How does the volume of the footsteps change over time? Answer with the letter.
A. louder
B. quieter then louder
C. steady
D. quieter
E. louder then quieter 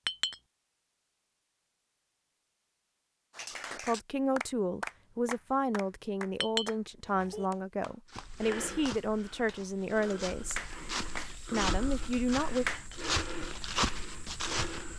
A.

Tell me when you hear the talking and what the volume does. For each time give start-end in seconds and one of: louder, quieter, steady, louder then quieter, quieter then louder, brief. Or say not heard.
3.8-10.6 steady
11.5-12.7 brief.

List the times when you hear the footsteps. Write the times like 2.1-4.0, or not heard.
8.1-14.9.